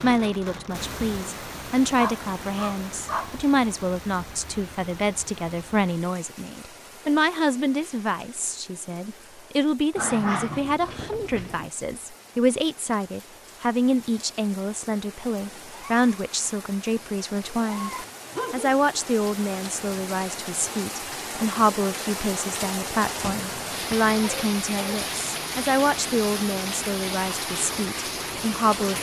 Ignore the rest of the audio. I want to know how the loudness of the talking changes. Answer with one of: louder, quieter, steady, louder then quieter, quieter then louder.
steady.